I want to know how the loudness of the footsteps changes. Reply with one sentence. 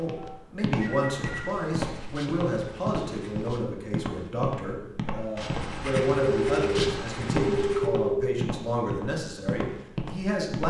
The volume of the footsteps stays about the same.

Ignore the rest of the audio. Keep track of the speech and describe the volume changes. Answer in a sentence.
The loudness of the speech stays about the same.